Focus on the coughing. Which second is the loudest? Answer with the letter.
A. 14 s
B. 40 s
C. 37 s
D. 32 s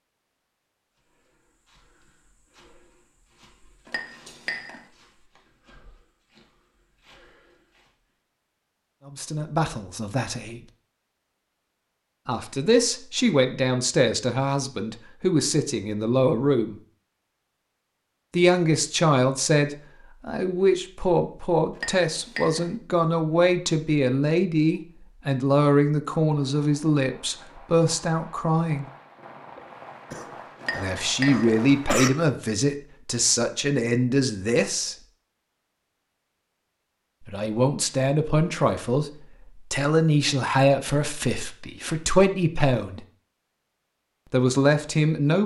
D.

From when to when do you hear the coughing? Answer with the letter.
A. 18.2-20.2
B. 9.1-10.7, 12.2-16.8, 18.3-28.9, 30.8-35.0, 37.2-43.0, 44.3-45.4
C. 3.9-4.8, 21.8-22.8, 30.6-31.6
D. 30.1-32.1
D.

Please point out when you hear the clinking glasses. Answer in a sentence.
You can hear the clinking glasses from 3.9 to 4.8 s, from 21.8 to 22.8 s and from 30.6 to 31.6 s.